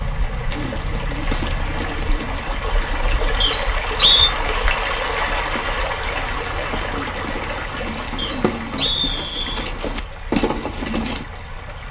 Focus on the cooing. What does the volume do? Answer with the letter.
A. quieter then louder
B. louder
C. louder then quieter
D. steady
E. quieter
A.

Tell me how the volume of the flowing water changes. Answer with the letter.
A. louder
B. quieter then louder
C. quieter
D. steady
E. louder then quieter
E.